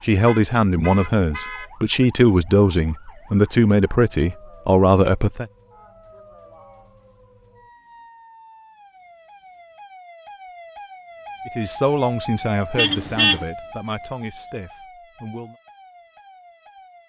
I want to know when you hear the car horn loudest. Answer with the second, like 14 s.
13 s.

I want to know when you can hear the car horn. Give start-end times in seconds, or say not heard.
0.2-2.0, 12.8-13.4.